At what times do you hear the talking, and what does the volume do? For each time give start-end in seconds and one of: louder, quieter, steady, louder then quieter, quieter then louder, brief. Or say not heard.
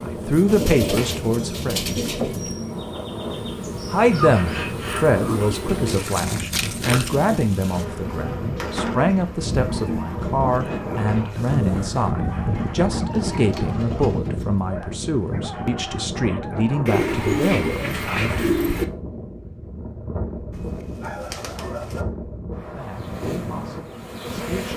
0.0-1.8 brief
3.9-18.4 steady
22.8-24.7 brief.